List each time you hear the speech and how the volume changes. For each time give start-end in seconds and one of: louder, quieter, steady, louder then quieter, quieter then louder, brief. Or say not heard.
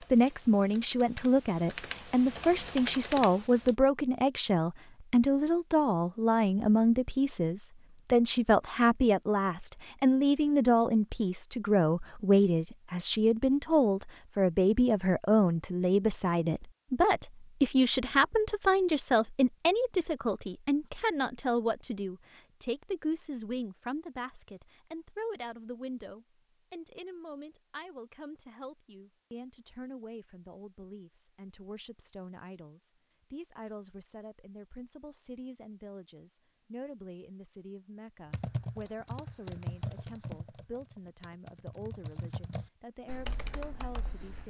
0.1-44.4 quieter.